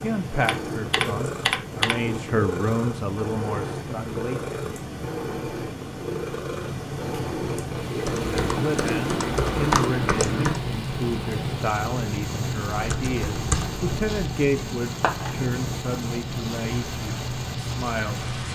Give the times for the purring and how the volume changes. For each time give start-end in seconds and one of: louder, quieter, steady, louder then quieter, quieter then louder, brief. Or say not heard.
0.0-18.5 steady.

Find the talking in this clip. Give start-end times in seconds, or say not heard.
0.0-4.6, 8.4-18.5.